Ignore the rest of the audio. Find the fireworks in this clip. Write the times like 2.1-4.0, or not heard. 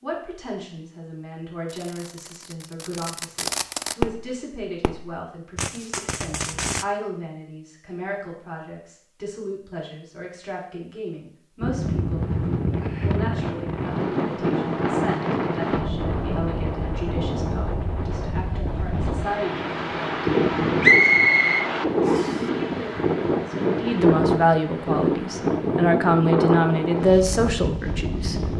1.6-6.8.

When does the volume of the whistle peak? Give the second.
21 s.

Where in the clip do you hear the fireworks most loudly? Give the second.
4 s.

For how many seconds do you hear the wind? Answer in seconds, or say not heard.
17 s.